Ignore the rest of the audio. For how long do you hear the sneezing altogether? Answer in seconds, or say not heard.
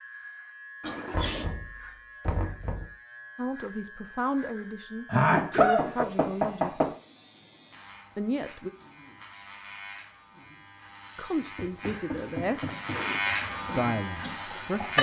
3 s.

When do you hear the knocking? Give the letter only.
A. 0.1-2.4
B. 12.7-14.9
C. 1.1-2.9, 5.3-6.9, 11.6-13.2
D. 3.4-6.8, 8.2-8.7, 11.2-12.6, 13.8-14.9
C.